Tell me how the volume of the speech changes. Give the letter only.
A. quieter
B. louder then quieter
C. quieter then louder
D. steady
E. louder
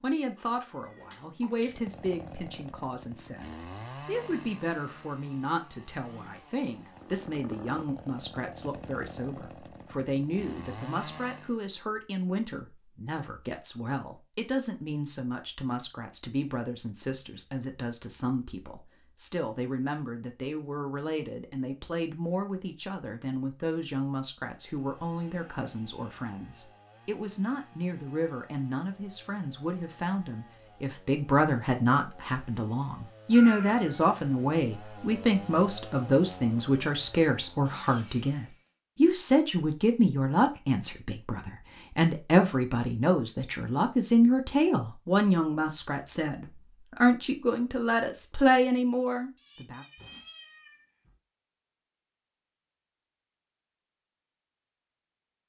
E.